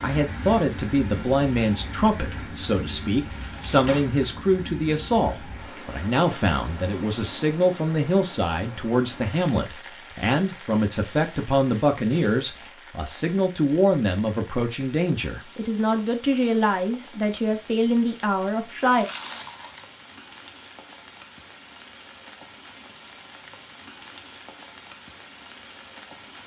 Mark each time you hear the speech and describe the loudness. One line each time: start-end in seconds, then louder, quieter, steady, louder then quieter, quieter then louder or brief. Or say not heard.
0.0-19.1 steady.